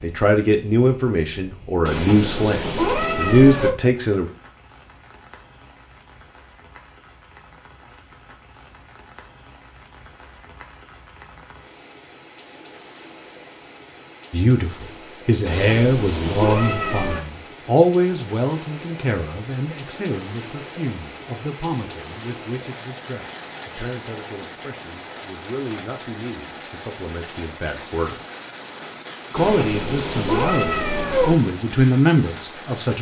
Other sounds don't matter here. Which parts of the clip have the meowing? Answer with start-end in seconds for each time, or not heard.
1.9-3.8, 15.4-17.2, 29.4-31.4.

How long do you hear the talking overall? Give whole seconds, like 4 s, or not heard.
22 s.